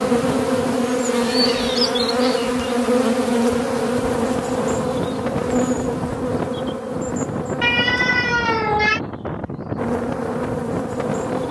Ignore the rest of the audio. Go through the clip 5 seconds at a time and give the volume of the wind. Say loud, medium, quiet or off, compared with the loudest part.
medium, loud, loud.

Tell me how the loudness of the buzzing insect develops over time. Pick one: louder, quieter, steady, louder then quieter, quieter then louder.
quieter.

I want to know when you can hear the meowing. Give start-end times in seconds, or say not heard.
1.1-2.8, 7.6-9.0.